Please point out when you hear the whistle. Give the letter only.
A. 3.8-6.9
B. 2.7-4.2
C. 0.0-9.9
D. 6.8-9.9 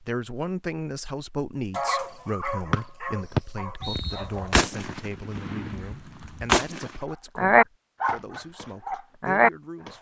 B.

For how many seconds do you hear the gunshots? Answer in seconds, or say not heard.
3 s.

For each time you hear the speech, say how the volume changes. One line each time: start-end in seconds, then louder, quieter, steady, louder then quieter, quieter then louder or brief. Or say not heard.
0.0-9.9 quieter.